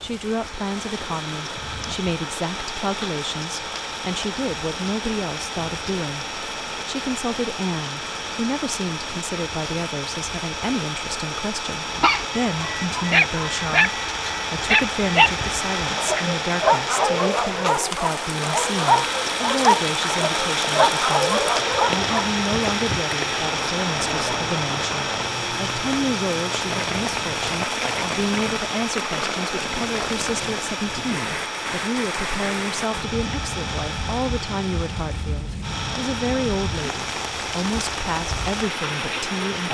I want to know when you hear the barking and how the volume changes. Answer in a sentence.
You can hear the barking from 11.9 to 22.4 s, at a steady volume.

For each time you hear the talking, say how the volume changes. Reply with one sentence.
The talking can be heard from 0.0 to 39.6 s, at a steady volume.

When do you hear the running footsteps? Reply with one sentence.
You can't hear the running footsteps here.